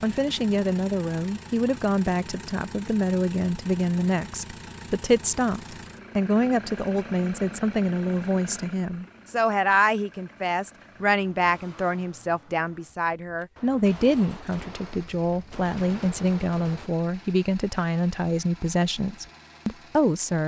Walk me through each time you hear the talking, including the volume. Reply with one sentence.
You can hear the talking from 0.0 to 20.4 s, at a steady volume.